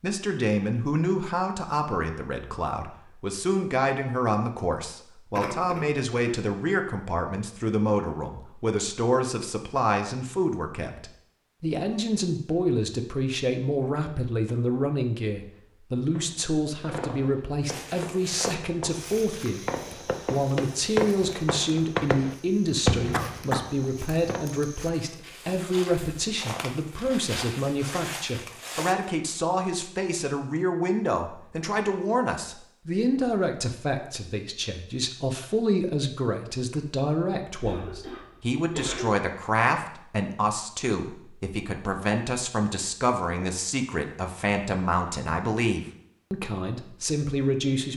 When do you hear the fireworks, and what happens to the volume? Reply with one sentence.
The fireworks can be heard from 15.9 to 24.4 s, getting louder.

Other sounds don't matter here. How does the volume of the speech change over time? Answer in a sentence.
The loudness of the speech stays about the same.